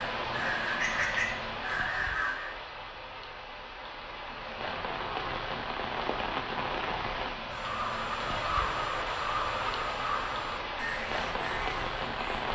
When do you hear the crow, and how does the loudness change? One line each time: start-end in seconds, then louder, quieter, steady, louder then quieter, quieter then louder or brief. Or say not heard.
0.0-2.5 brief
7.5-12.5 quieter.